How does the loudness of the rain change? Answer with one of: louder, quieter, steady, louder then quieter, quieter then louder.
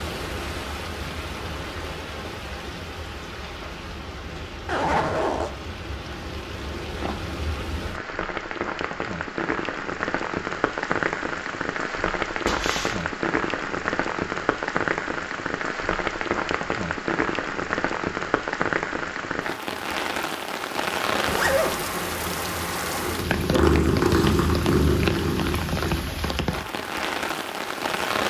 louder.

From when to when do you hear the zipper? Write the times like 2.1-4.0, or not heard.
4.7-5.5, 12.4-13.1, 21.2-21.8.